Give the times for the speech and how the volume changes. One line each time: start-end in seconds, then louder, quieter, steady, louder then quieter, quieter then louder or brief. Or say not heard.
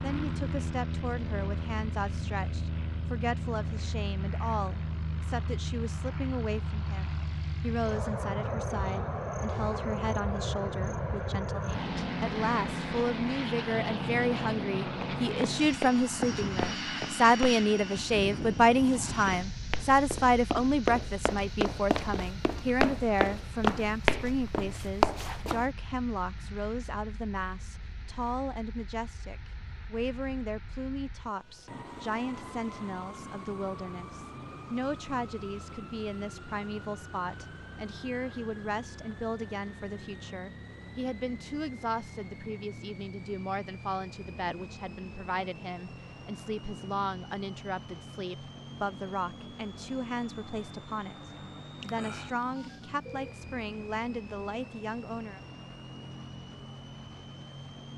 0.0-55.4 louder then quieter.